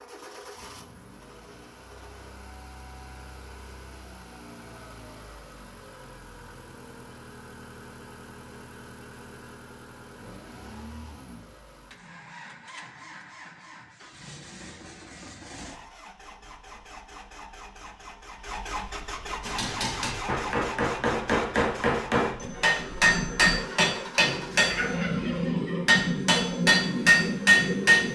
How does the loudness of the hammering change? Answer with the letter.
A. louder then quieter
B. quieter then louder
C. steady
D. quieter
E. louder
E.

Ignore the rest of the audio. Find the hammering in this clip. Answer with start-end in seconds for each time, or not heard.
19.4-28.0.